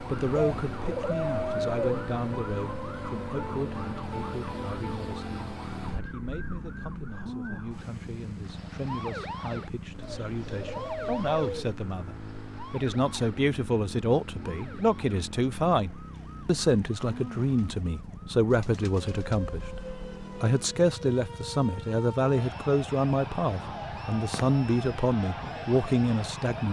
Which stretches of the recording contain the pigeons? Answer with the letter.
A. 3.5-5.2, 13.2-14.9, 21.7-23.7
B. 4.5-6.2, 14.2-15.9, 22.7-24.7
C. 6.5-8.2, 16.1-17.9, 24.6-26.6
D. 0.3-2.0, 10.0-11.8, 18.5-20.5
D.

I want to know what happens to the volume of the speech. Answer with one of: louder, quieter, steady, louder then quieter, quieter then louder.
quieter then louder.